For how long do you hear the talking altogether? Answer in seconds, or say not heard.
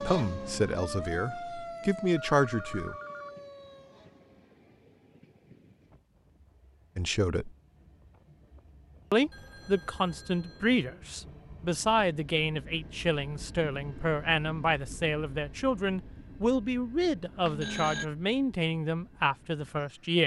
15 s.